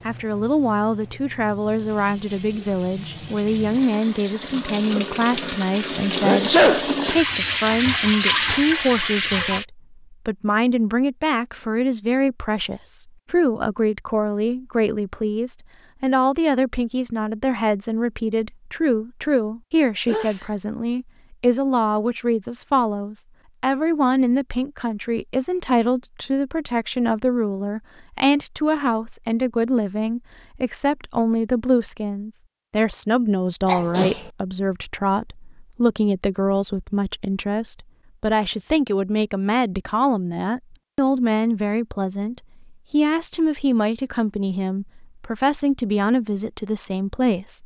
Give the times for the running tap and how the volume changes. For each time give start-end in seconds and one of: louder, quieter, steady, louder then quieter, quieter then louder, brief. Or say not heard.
0.0-9.7 louder.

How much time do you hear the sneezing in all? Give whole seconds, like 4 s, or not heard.
2 s.